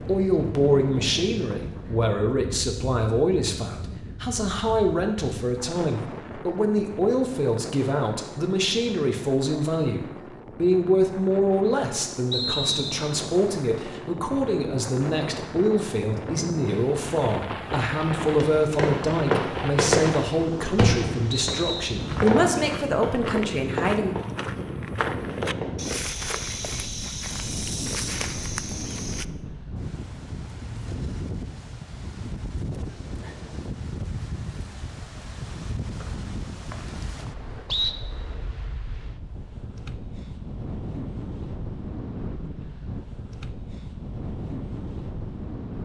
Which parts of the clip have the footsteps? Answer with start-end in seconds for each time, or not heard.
21.9-29.2.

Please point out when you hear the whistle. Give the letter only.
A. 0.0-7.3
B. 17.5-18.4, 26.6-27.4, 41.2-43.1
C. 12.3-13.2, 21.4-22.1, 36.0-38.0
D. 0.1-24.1
C.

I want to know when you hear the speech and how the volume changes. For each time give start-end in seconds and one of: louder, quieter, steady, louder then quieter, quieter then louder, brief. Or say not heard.
0.1-24.1 steady.